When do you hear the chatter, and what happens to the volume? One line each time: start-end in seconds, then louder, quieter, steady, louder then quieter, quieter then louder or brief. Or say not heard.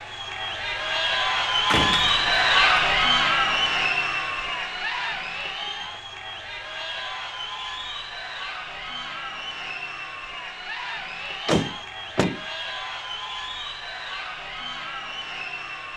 0.0-15.9 quieter.